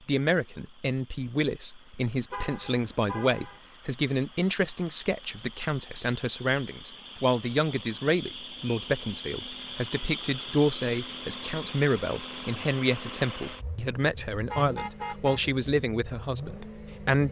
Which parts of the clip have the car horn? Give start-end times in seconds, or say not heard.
2.3-3.6, 14.4-15.4.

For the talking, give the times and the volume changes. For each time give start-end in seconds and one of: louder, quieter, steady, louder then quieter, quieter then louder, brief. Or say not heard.
0.1-17.2 steady.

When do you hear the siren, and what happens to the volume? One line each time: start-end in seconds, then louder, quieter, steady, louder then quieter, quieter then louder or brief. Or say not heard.
not heard.